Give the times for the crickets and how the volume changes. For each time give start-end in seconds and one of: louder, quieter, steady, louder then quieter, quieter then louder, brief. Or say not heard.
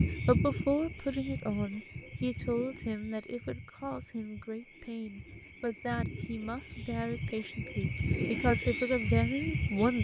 0.0-9.9 quieter then louder.